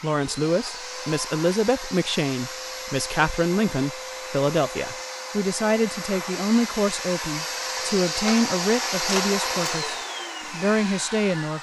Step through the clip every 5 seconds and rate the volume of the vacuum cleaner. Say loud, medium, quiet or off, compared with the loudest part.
medium, loud, medium.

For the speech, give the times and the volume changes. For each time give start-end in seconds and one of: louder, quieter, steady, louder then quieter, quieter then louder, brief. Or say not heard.
0.0-11.5 steady.